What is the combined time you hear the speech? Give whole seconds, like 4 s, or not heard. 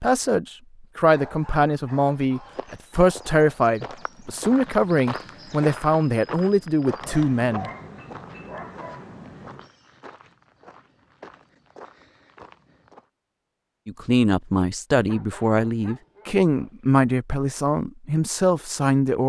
13 s.